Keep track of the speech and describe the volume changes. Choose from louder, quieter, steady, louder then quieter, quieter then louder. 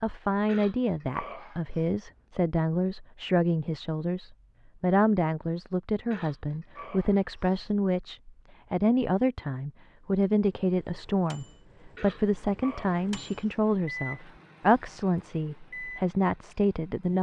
steady.